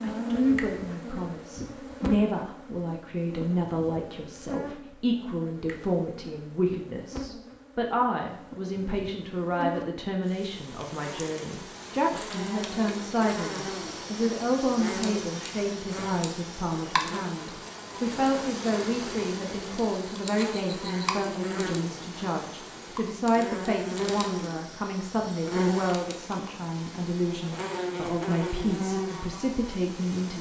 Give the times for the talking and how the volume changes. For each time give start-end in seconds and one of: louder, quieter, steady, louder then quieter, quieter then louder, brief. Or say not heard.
0.0-30.3 steady.